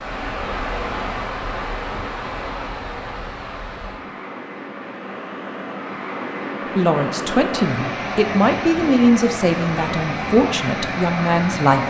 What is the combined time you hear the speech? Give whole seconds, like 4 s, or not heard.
5 s.